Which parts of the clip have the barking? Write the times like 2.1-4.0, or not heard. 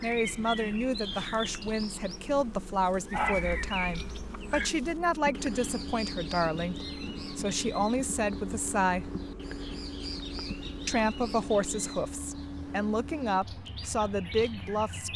3.1-4.7.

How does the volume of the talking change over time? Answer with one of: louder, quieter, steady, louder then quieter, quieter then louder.
steady.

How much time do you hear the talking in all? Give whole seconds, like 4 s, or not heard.
13 s.